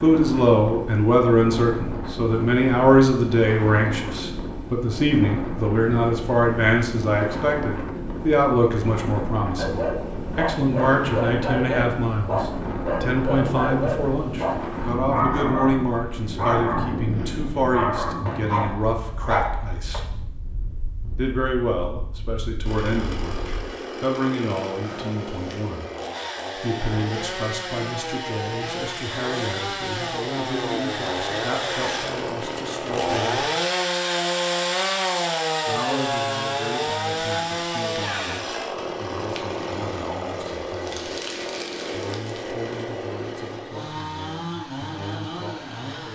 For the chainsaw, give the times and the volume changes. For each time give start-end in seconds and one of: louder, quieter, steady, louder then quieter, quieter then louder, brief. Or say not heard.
22.6-46.1 louder then quieter.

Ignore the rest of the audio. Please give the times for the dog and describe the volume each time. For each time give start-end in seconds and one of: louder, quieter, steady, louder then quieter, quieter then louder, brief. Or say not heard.
9.6-20.0 steady.